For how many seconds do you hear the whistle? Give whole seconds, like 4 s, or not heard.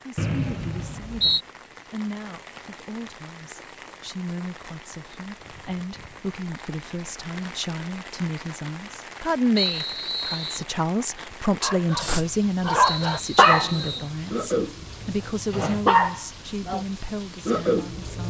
4 s.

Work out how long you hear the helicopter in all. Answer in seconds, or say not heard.
not heard.